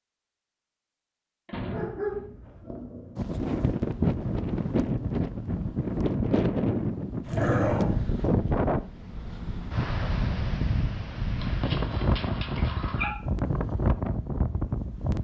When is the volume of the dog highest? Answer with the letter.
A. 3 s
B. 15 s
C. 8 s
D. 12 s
C.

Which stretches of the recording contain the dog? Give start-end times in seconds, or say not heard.
1.7-3.4, 7.2-8.3, 11.3-13.2.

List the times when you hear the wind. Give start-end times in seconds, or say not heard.
3.1-15.1.